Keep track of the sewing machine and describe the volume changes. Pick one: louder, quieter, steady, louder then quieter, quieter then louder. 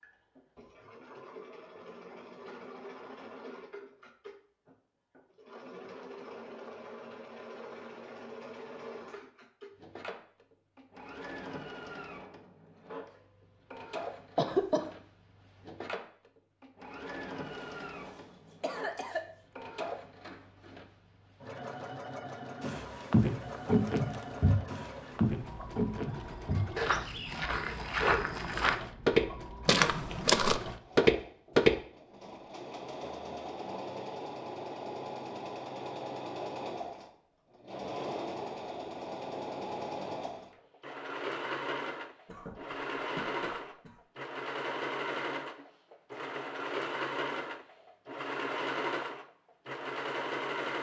louder.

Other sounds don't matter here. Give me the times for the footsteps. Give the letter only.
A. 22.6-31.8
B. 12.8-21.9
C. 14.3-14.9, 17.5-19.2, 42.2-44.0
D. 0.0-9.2
A.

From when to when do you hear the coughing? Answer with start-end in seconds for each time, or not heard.
14.3-14.9, 17.5-19.2, 42.2-44.0.